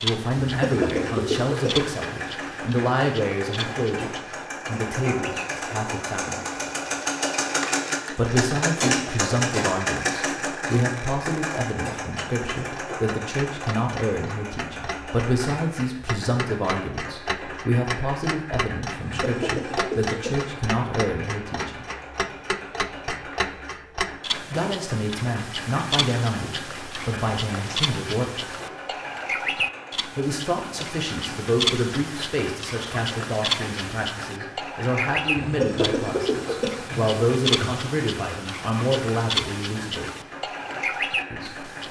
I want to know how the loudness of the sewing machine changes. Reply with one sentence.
The loudness of the sewing machine goes down.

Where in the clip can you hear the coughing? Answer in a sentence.
You can hear the coughing from 0.4 to 1.8 s, from 18.9 to 20.6 s and from 35.4 to 37.7 s.